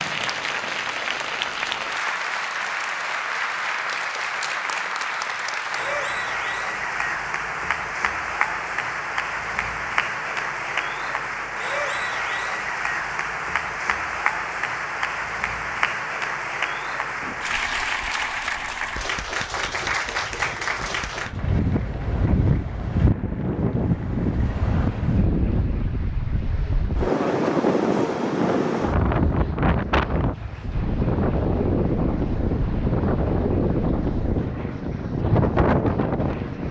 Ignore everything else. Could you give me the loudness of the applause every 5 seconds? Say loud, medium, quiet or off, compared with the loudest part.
loud, loud, loud, loud, medium, quiet, quiet, quiet.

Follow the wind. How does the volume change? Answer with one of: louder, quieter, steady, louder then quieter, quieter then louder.
louder.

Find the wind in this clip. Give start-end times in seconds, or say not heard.
17.2-36.6.